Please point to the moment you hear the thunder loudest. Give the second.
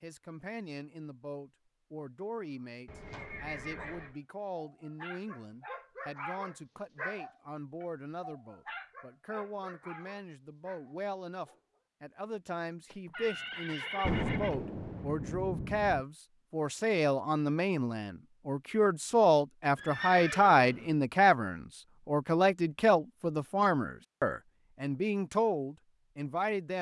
14 s.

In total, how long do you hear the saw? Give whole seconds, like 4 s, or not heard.
not heard.